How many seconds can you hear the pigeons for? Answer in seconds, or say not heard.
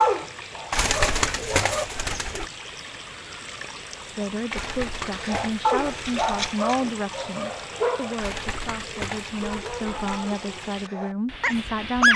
6 s.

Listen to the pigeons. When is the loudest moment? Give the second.
1 s.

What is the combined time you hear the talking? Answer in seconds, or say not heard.
8 s.